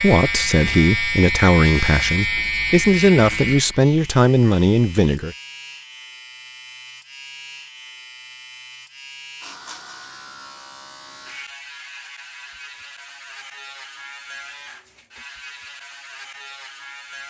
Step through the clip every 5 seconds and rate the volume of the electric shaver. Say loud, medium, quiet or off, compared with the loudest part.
loud, quiet, quiet, quiet.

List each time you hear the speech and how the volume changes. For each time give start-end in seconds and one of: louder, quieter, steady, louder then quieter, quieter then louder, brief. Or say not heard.
0.0-5.3 steady.